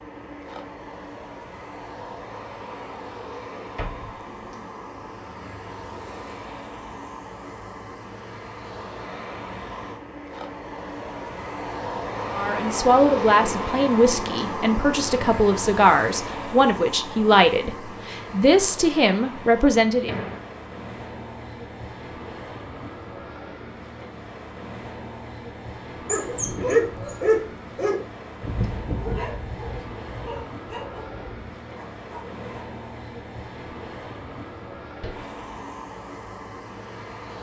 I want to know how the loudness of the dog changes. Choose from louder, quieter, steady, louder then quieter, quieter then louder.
quieter.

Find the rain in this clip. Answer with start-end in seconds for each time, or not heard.
not heard.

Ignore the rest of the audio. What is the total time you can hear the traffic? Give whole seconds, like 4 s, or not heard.
37 s.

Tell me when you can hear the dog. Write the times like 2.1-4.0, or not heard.
26.1-32.5.